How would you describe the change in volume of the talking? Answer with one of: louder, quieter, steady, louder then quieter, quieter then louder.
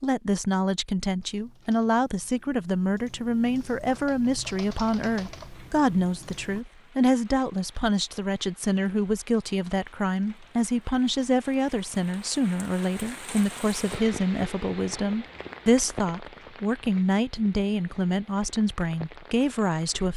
steady.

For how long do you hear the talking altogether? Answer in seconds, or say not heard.
20 s.